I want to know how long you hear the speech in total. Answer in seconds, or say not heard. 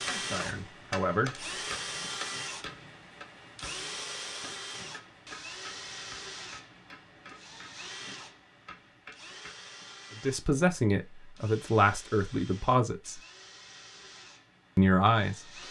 5 s.